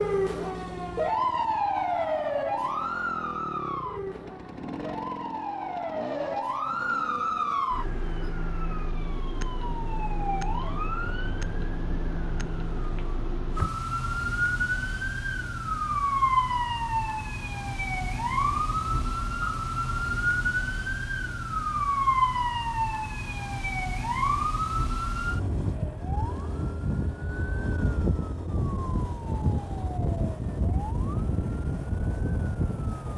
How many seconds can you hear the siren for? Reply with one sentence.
You can hear the siren for 33 seconds altogether.